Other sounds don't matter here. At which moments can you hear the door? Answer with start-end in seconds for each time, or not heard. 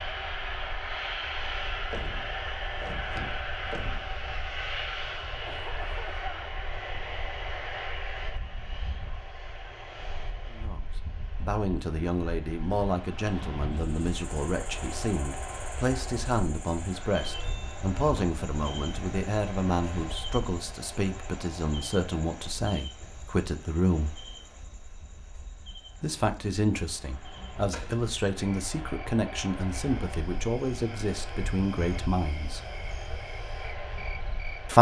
1.9-4.2, 17.3-18.4, 27.7-28.1.